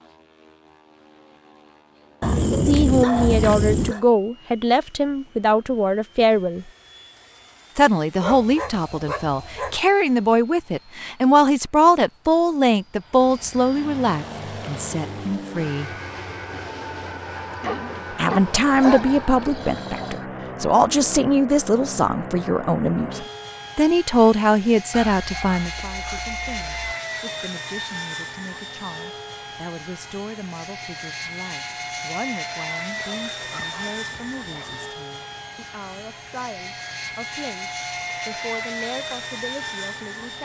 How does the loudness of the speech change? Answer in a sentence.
The loudness of the speech goes down.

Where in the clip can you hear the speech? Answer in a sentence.
The speech can be heard from 2.6 to 6.7 s, from 7.8 to 15.9 s and from 18.1 to 40.3 s.